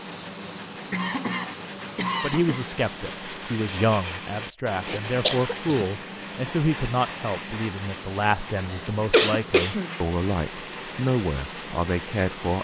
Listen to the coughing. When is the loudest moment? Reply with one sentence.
The loudest moment of the coughing is at 9 seconds.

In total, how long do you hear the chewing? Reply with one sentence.
You can't hear the chewing here.